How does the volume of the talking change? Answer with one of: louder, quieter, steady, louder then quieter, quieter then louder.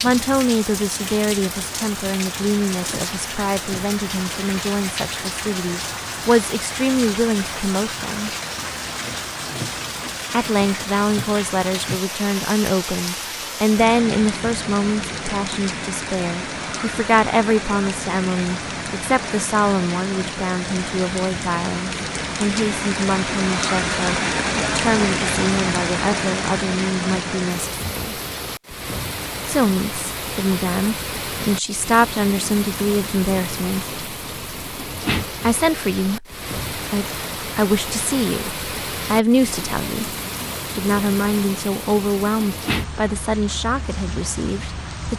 steady.